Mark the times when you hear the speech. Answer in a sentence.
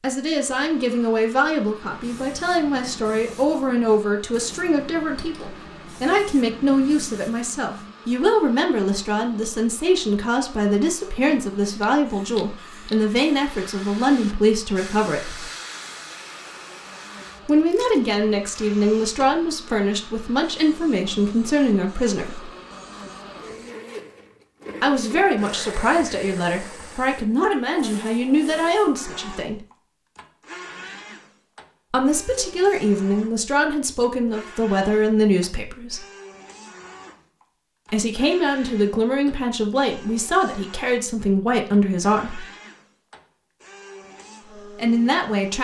The speech can be heard from 0.0 to 15.5 s, from 17.4 to 22.5 s, from 24.8 to 29.6 s, from 31.9 to 36.0 s, from 37.9 to 42.5 s and from 44.8 to 45.5 s.